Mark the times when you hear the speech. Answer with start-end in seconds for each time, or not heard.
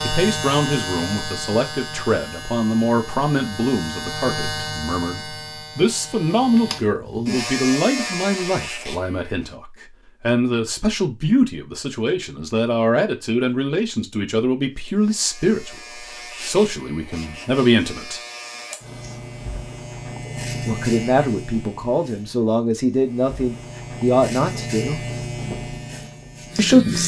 0.0-18.2, 20.6-25.0, 26.6-27.0.